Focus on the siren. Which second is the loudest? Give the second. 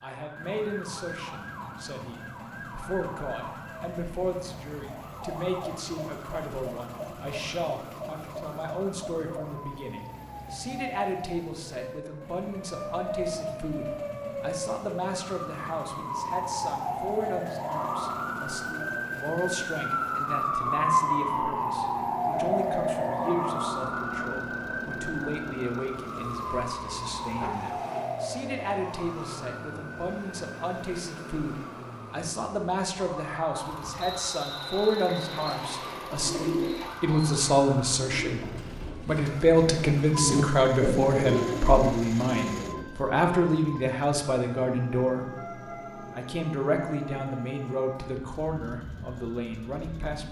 21 s.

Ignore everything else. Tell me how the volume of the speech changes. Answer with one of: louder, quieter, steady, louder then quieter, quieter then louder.
louder.